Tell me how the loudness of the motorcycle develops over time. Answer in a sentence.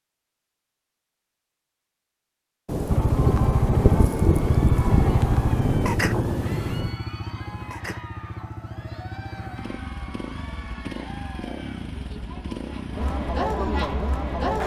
The loudness of the motorcycle goes down.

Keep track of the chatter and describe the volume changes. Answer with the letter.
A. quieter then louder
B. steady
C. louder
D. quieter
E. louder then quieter
C.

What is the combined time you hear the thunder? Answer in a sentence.
The thunder can be heard for 4 seconds in total.